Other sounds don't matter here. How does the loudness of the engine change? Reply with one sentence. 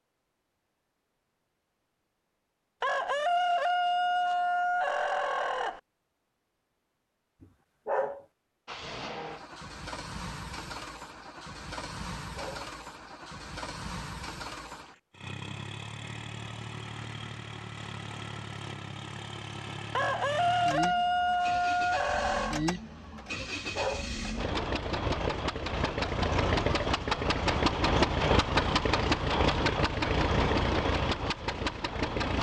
The loudness of the engine goes up.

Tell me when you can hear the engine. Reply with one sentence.
You can hear the engine from 8.7 to 32.3 s.